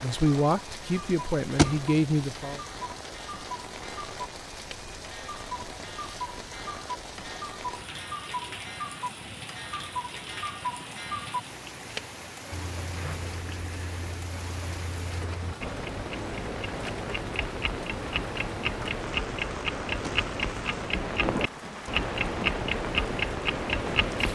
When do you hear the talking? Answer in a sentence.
You can hear the talking from 0.0 to 2.6 s.